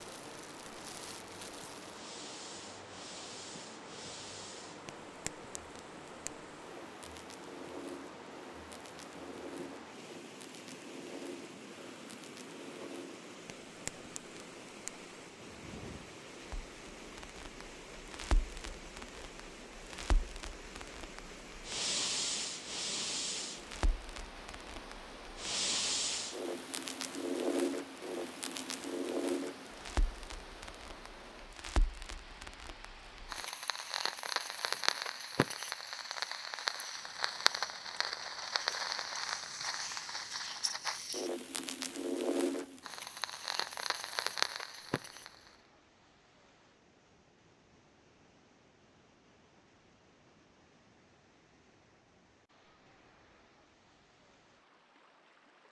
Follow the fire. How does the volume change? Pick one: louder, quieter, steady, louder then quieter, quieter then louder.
louder.